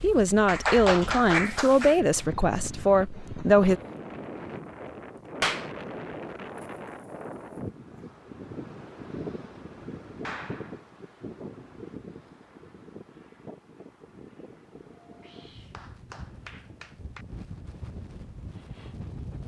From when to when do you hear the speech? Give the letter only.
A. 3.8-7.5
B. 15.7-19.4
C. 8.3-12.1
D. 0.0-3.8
D.